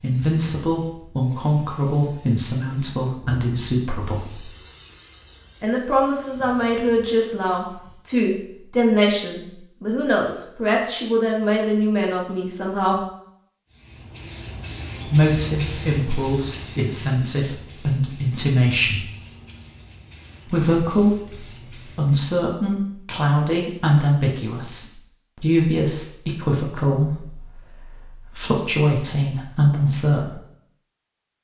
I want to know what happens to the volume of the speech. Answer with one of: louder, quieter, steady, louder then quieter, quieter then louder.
steady.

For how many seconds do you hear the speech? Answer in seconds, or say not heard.
26 s.